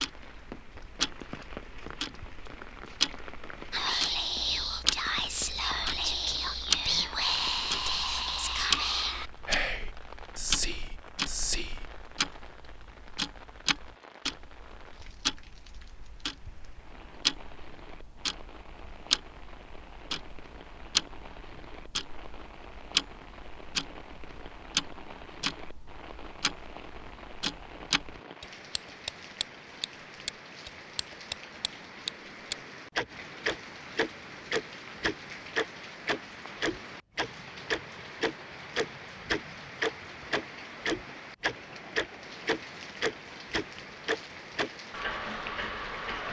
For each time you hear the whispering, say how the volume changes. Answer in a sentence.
You can hear the whispering from 3.7 to 11.9 s, at a steady volume.